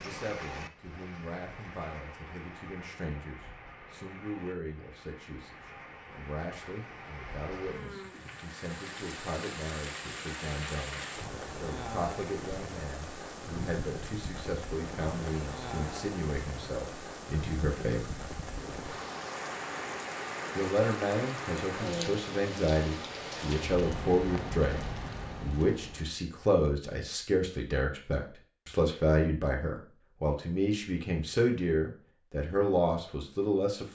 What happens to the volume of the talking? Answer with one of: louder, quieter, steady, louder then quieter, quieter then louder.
louder.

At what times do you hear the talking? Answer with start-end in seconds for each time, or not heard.
0.0-18.1, 20.6-33.9.